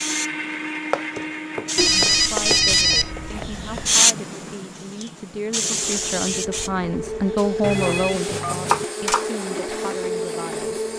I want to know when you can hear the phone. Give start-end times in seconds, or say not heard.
1.8-3.1, 7.6-8.8.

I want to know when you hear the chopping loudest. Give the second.
9 s.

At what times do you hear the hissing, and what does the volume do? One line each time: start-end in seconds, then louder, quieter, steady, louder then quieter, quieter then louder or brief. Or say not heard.
0.0-10.9 louder then quieter.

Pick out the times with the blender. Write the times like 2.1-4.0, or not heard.
0.0-3.4, 5.6-10.9.